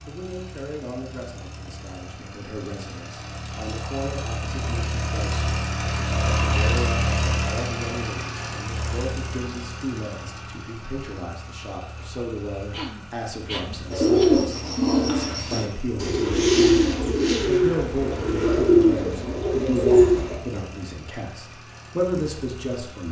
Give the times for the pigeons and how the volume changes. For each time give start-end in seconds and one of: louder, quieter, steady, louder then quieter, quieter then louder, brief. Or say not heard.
13.9-20.4 steady.